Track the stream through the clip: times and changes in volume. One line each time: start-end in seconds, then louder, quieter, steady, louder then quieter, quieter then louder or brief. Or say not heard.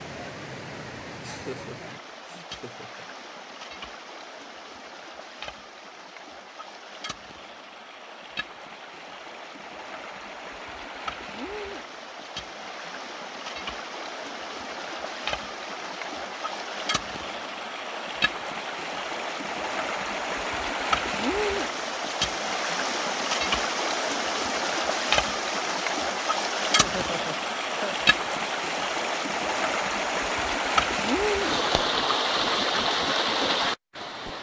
0.0-34.3 louder.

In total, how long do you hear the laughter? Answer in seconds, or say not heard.
3 s.